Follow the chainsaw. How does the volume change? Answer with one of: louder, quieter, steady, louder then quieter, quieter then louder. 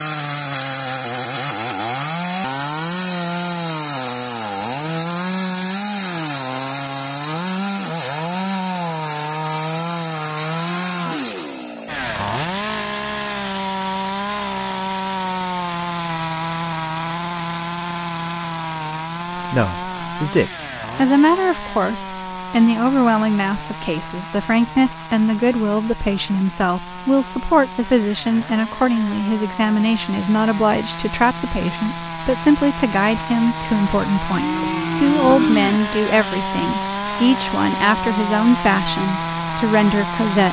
quieter then louder.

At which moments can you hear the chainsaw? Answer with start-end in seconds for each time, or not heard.
0.0-40.4.